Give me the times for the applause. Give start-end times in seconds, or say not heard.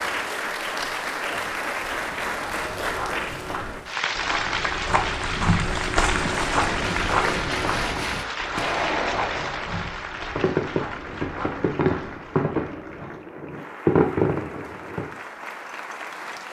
0.0-16.4.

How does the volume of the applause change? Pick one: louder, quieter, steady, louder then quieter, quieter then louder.
quieter.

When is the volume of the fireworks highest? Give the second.
14 s.